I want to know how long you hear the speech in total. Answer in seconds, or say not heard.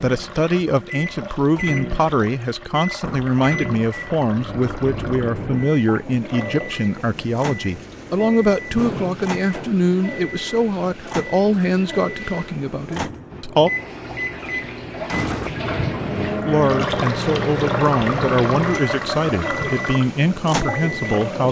19 s.